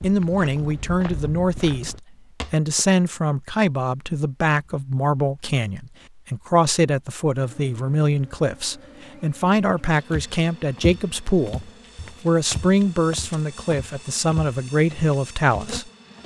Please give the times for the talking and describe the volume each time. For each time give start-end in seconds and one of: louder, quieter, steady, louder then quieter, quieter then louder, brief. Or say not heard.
0.0-15.9 steady.